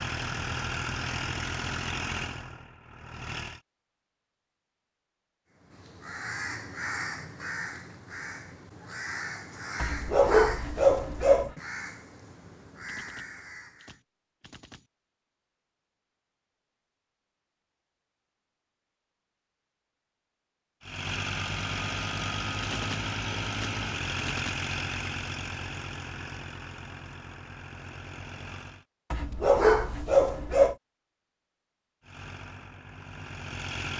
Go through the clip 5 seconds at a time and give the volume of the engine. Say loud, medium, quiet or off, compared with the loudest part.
loud, off, off, off, loud, medium, medium.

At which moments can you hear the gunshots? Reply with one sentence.
You can hear the gunshots from 12.8 to 14.8 s and from 22.6 to 24.6 s.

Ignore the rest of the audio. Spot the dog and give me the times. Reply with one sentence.
You can hear the dog from 9.8 to 11.5 s and from 29.1 to 30.8 s.